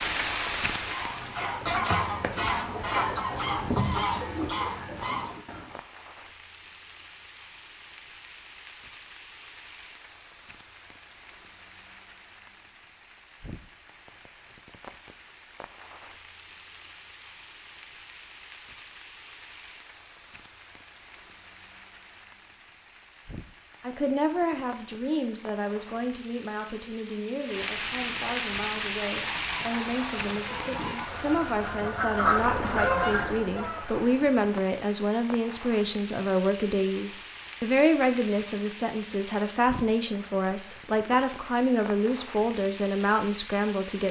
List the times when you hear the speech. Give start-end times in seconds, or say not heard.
23.8-44.0.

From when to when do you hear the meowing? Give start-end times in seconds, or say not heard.
not heard.